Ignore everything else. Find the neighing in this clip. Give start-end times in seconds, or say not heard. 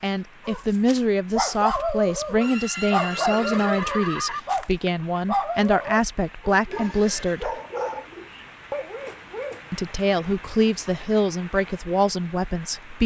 2.4-4.4, 6.7-7.5.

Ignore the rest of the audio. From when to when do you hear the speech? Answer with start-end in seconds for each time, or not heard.
0.0-7.5, 9.7-13.0.